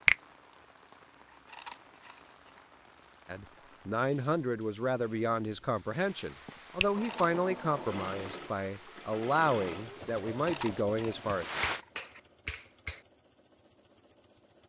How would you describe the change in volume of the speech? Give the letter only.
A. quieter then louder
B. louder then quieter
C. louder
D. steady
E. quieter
D.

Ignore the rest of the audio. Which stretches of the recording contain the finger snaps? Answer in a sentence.
The finger snaps can be heard from 11.1 to 13.1 s.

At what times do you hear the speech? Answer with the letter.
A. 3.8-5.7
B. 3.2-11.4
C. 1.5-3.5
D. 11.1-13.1
B.